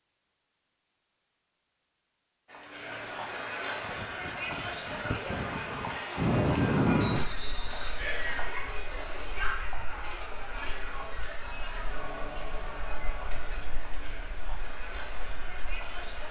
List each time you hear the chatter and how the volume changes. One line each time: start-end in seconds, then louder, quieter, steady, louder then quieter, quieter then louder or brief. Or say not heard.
2.5-16.2 quieter.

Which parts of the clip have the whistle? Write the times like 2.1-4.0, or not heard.
7.0-8.0.